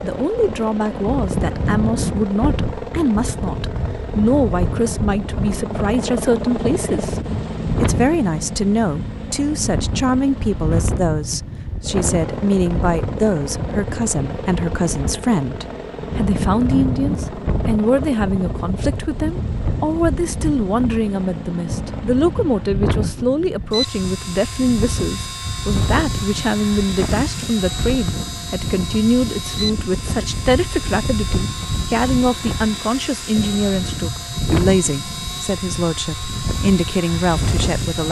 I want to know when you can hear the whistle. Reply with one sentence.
You can't hear the whistle here.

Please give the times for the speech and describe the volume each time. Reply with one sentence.
You can hear the speech from 0.0 to 38.0 s, at a steady volume.